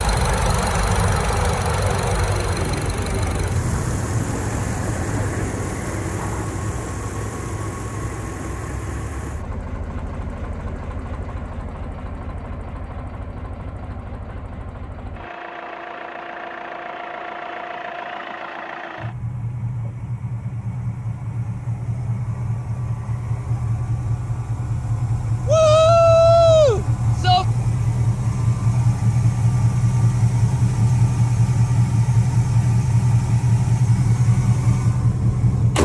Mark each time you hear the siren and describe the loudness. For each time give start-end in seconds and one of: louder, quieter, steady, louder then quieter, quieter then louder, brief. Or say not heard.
not heard.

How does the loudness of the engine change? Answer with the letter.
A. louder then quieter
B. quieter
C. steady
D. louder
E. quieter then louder
E.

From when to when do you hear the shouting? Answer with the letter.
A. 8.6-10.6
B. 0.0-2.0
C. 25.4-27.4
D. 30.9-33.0
C.